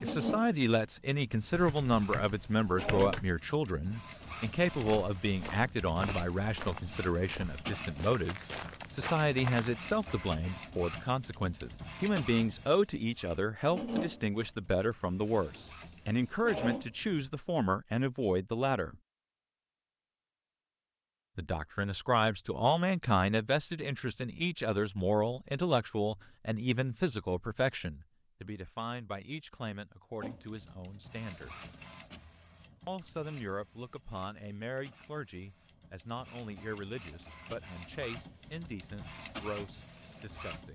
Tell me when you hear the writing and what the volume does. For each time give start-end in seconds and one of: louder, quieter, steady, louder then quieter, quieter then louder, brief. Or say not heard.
not heard.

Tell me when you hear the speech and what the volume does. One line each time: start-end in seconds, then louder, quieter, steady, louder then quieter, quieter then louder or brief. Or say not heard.
0.0-18.9 steady
21.4-31.5 quieter
32.9-40.7 steady.